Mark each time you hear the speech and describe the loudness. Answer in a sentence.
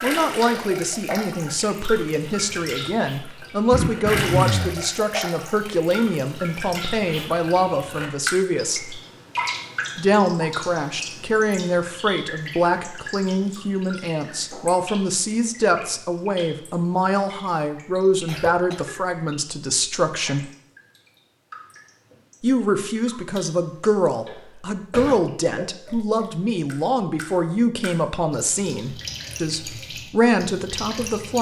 You can hear the speech from 0.0 to 9.0 s, at a steady volume; from 9.9 to 20.4 s, at a steady volume; and from 22.4 to 31.3 s, at a steady volume.